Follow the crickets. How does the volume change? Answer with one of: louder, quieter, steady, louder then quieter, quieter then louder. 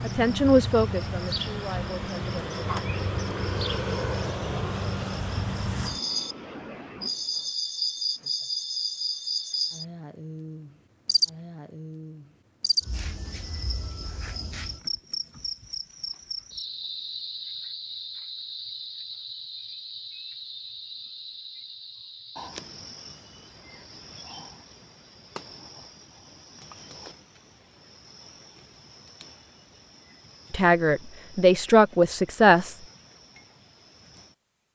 quieter.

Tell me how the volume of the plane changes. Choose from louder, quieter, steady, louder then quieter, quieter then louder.
louder then quieter.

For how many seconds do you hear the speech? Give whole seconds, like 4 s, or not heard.
5 s.